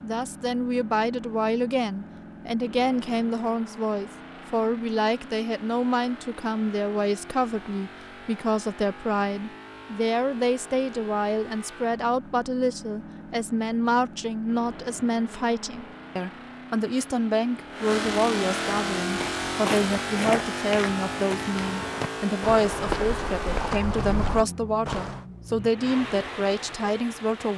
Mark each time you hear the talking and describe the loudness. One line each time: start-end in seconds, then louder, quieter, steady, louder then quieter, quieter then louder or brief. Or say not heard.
0.0-27.5 steady.